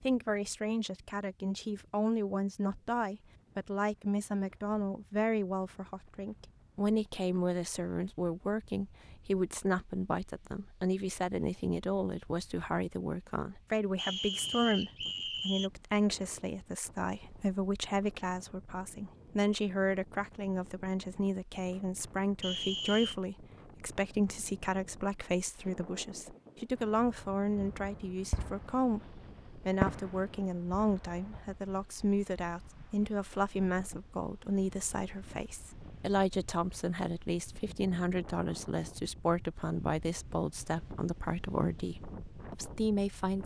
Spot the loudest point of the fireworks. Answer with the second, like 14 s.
30 s.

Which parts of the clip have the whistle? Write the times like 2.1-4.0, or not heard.
13.9-15.7, 22.4-23.1.